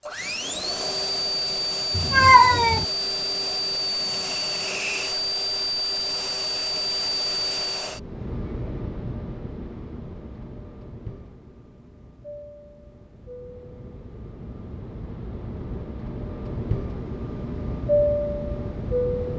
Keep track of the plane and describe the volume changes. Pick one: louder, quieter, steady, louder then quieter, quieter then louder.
quieter then louder.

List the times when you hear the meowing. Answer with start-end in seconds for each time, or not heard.
1.9-2.9.